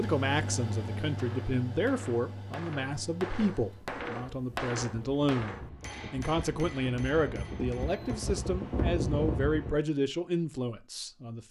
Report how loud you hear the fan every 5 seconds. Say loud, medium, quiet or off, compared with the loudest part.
medium, loud, off.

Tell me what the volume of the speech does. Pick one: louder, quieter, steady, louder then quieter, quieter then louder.
steady.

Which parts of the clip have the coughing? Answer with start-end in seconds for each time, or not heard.
not heard.